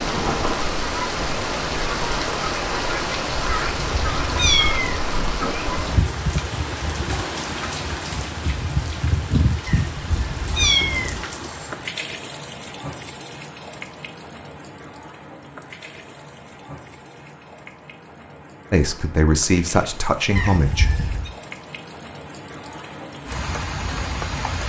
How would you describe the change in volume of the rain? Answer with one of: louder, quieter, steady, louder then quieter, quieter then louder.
quieter then louder.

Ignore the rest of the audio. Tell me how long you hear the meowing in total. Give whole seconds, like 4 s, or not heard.
4 s.